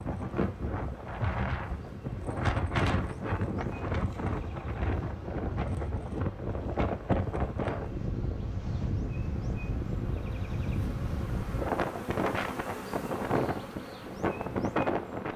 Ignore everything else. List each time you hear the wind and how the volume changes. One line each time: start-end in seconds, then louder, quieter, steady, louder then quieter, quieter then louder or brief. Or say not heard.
0.0-15.3 steady.